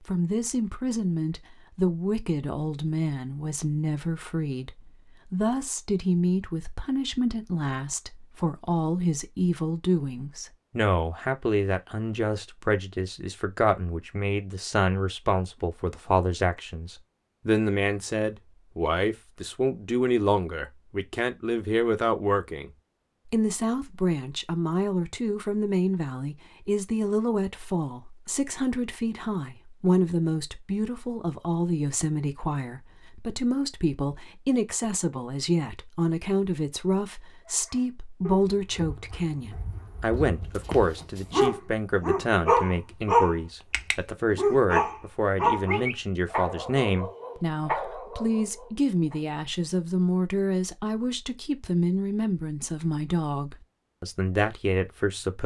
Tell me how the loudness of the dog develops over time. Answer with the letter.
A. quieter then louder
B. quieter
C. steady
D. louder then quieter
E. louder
D.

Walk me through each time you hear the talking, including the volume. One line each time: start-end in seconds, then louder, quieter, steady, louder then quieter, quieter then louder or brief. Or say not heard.
0.1-55.4 steady.